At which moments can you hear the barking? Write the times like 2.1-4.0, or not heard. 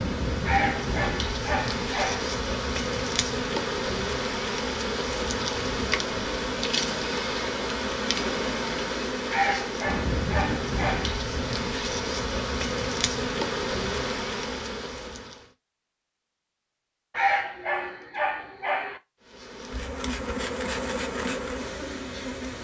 0.5-2.3, 9.3-11.2, 17.1-19.0.